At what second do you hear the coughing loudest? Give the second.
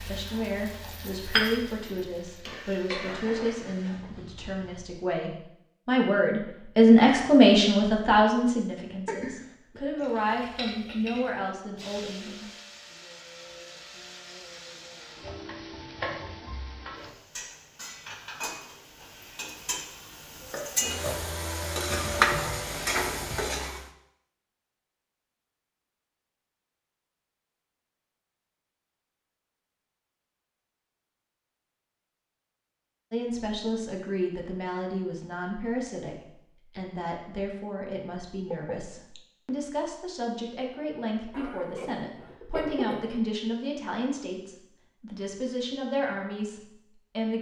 43 s.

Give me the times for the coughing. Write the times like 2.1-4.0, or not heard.
41.3-43.1.